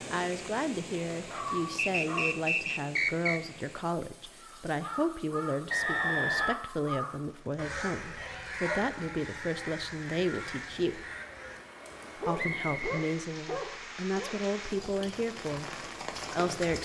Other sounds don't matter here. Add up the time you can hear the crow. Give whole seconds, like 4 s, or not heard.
8 s.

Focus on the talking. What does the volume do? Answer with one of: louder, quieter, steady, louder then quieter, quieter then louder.
steady.